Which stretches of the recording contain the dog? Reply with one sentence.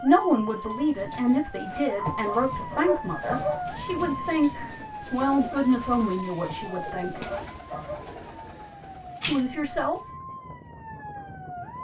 You can hear the dog from 1.9 to 3.7 s and from 6.4 to 8.1 s.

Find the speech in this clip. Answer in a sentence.
You can hear the speech from 0.0 to 7.2 s and from 9.2 to 10.1 s.